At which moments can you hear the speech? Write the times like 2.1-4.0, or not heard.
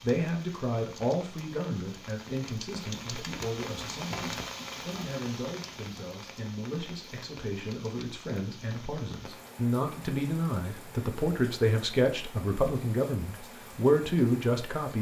0.0-14.9.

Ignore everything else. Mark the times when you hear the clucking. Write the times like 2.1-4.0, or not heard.
not heard.